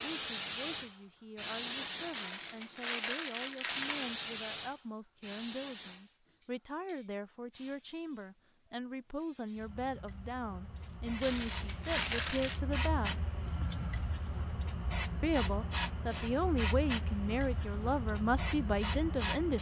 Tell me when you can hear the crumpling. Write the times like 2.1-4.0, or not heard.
2.1-4.2, 11.2-12.6.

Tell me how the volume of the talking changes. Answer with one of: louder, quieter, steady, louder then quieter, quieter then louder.
louder.